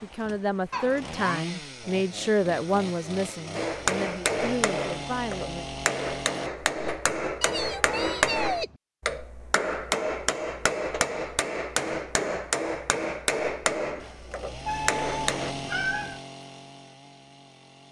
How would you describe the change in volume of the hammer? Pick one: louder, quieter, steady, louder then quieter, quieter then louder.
steady.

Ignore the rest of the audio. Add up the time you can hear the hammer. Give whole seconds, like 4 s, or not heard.
12 s.